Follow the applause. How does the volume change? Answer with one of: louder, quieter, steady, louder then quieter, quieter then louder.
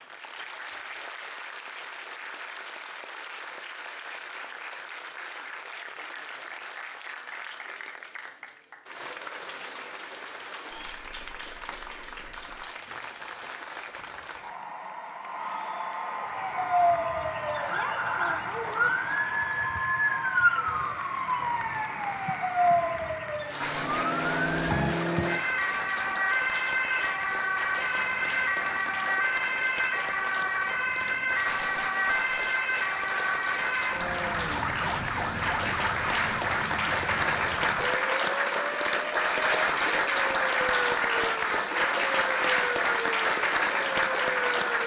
louder.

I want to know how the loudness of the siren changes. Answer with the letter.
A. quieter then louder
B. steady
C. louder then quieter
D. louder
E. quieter
E.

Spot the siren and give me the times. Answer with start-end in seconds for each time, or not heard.
16.1-44.8.